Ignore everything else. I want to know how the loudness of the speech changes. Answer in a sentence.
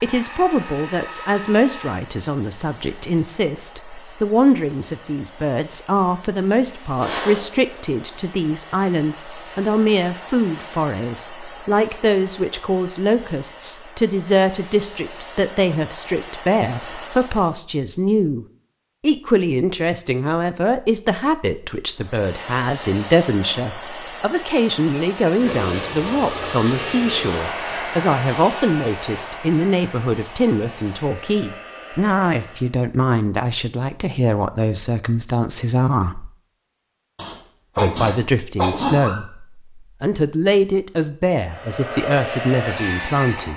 The loudness of the speech stays about the same.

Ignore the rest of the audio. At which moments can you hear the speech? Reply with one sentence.
You can hear the speech from 0.0 to 36.3 s and from 37.8 to 43.5 s.